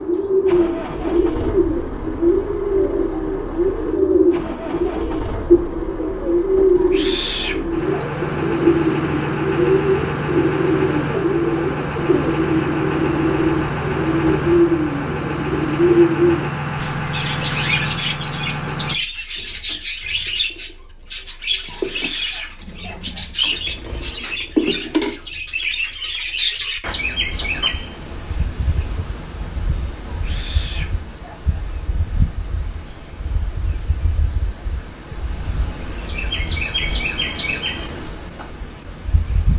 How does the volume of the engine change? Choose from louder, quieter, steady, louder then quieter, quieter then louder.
louder.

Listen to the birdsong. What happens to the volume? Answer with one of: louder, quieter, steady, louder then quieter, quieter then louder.
quieter.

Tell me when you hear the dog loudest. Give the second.
7 s.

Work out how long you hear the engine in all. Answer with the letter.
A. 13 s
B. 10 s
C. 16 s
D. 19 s
D.